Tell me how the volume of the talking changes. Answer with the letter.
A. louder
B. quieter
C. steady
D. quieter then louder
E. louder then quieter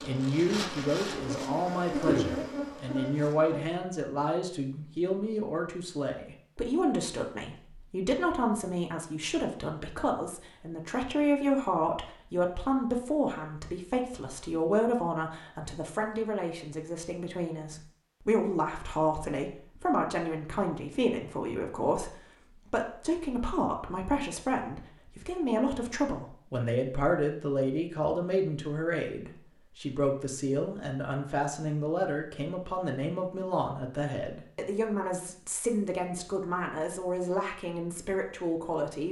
C.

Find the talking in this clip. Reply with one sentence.
You can hear the talking from 0.0 to 39.0 s.